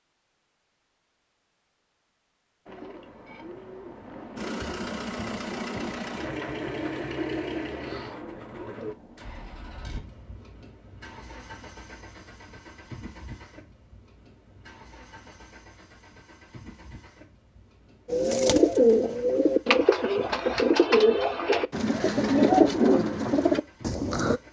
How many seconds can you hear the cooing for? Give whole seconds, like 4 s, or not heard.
13 s.